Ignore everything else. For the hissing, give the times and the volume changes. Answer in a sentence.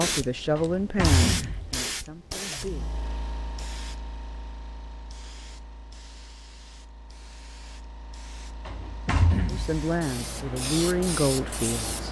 The hissing can be heard from 0.0 to 12.0 s, getting quieter then louder.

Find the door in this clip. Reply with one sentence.
The door can be heard from 0.6 to 1.8 s and from 8.7 to 9.8 s.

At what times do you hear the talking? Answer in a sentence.
You can hear the talking from 0.0 to 2.9 s and from 9.4 to 12.0 s.